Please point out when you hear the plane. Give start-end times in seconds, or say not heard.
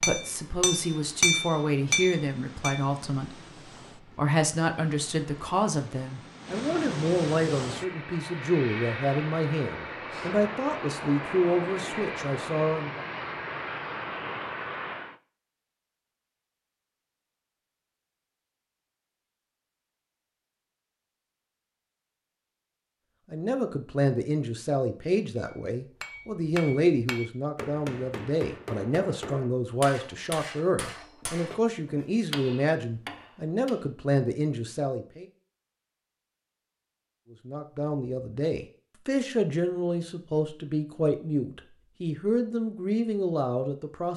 0.1-15.2.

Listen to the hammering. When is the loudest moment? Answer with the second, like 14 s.
1 s.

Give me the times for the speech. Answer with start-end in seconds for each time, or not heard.
0.0-13.1, 23.3-35.2, 37.5-44.1.